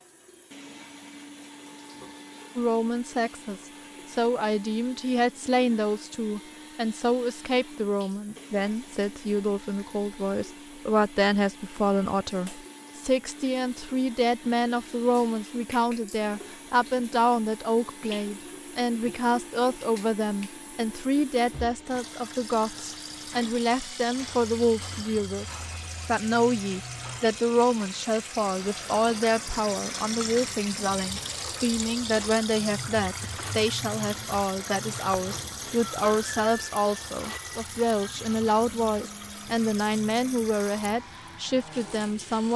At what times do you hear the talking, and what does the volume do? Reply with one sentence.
You can hear the talking from 2.5 to 25.4 s, at a steady volume; and from 26.1 to 42.5 s, at a steady volume.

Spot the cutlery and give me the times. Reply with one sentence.
You can't hear the cutlery here.